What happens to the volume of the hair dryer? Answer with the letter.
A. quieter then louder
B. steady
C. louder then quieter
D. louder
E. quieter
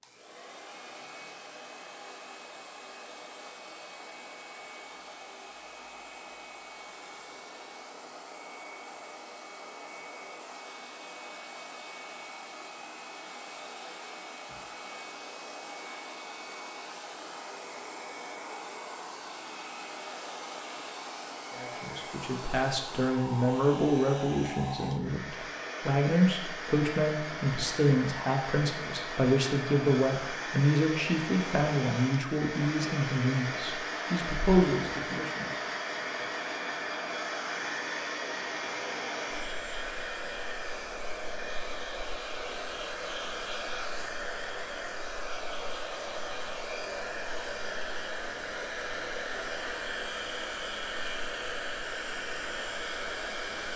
D.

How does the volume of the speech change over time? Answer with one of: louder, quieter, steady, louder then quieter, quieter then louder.
steady.